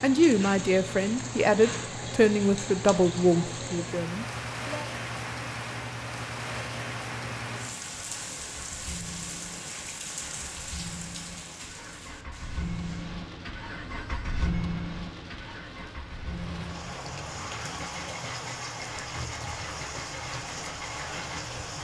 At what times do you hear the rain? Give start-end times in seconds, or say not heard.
0.0-21.8.